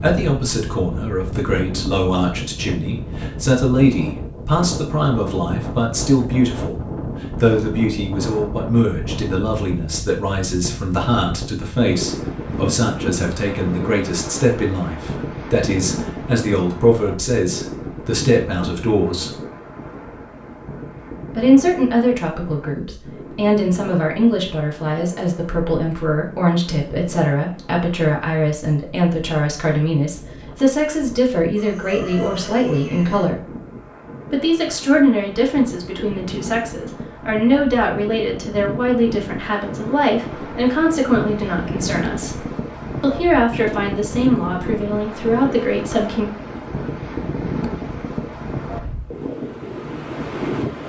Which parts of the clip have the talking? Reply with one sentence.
You can hear the talking from 0.0 to 6.8 s, from 7.4 to 19.3 s, from 21.4 to 33.5 s, from 34.3 to 42.4 s and from 43.0 to 46.2 s.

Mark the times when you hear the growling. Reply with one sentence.
The growling can't be heard in this clip.